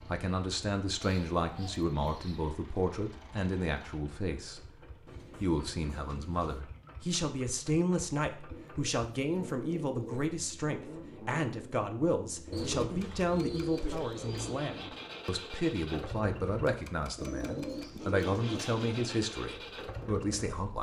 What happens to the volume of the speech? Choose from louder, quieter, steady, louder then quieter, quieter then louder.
steady.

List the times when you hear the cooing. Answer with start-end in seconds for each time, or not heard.
1.0-2.5, 5.0-6.6, 8.5-10.3, 12.5-14.7, 17.1-19.2.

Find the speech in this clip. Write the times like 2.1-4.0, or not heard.
0.1-4.7, 5.4-20.7.